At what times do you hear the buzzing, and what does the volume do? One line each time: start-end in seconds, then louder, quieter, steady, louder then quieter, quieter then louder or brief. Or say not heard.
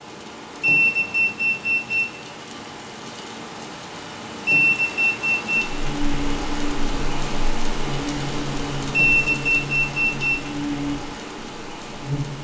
5.6-12.4 steady.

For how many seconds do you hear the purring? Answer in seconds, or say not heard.
not heard.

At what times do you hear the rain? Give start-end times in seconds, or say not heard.
0.0-12.4.